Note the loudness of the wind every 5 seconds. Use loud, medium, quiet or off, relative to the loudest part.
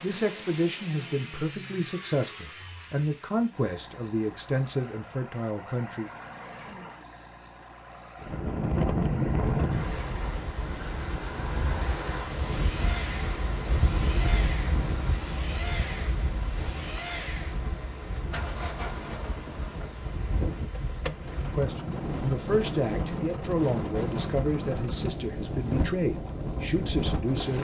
off, loud, medium, medium, medium, medium.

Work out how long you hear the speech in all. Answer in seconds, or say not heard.
12 s.